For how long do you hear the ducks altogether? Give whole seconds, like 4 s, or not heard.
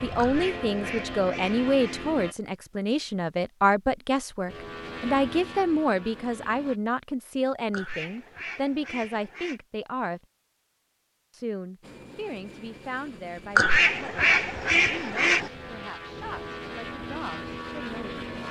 6 s.